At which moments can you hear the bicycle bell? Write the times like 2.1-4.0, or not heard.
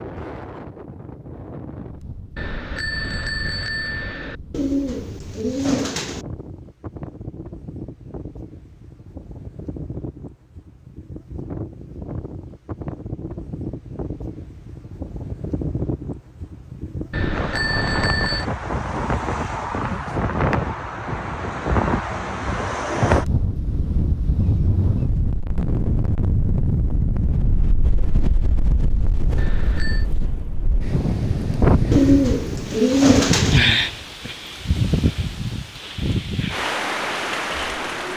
2.4-4.3, 17.1-18.4, 29.4-30.1.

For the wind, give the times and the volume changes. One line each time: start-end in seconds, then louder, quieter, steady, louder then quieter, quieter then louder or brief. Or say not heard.
0.0-38.1 louder.